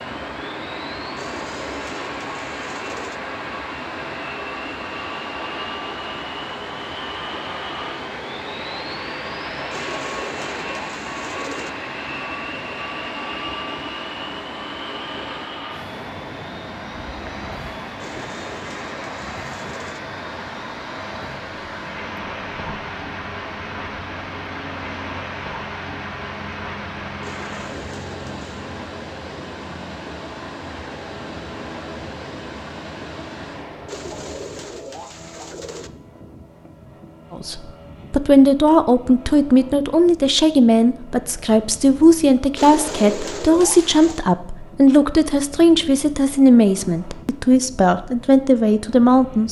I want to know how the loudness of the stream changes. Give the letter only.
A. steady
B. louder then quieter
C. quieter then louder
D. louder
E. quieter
A.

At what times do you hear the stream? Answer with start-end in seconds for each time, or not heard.
0.0-34.1.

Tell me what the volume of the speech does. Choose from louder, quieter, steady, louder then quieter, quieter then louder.
steady.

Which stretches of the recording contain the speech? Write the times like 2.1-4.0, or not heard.
37.3-49.4.